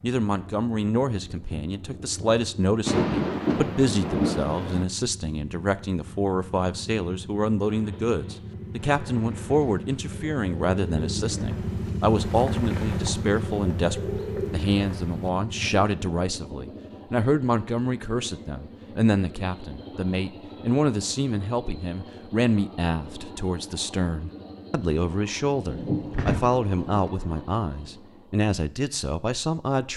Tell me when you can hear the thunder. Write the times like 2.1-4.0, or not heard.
2.9-4.8, 25.6-27.1.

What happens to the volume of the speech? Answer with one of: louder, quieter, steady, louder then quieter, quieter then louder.
steady.